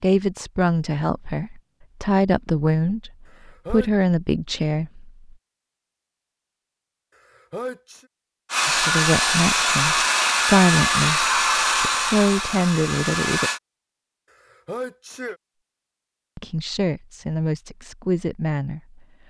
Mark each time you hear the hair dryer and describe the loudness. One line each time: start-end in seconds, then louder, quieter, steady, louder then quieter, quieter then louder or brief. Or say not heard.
8.5-13.6 quieter.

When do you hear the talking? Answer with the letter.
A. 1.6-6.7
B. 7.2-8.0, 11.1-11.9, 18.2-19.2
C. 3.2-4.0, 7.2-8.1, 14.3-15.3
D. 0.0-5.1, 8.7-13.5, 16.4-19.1
D.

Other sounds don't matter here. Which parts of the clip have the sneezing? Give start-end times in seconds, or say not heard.
3.2-4.0, 7.2-8.1, 14.3-15.3.